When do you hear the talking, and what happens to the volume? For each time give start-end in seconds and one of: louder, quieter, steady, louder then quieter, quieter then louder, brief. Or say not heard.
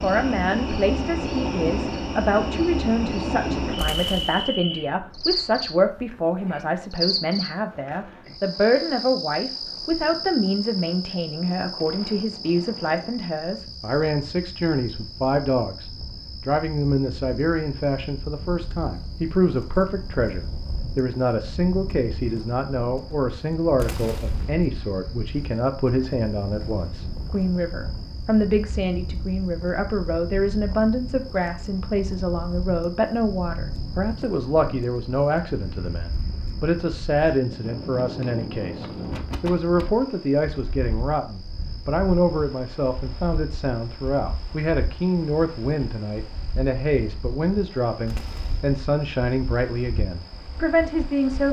0.0-51.4 steady.